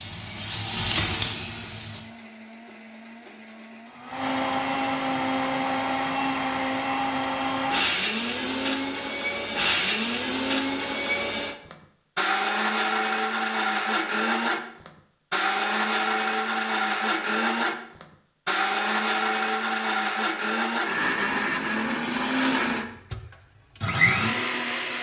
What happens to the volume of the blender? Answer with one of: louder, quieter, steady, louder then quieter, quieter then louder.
louder.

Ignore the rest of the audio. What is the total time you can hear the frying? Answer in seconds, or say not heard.
2 s.